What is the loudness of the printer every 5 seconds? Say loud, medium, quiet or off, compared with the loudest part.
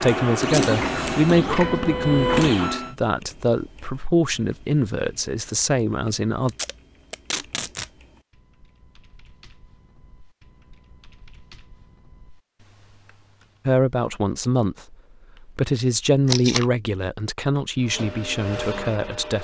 loud, off, off, medium.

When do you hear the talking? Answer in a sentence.
The talking can be heard from 0.0 to 6.5 s and from 13.7 to 19.3 s.